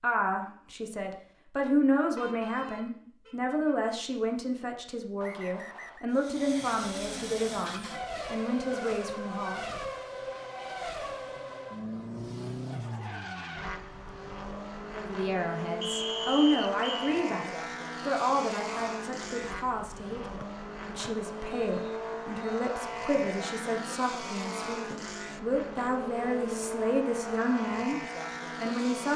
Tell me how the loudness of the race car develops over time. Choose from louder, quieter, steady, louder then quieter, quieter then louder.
steady.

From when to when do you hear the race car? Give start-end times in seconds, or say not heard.
6.1-29.1.